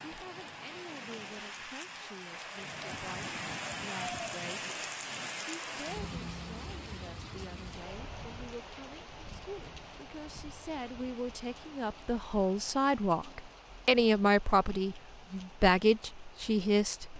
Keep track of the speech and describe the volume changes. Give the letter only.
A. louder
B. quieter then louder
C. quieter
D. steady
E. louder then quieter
A.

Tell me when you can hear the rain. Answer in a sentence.
You can hear the rain from 0.0 to 17.1 s.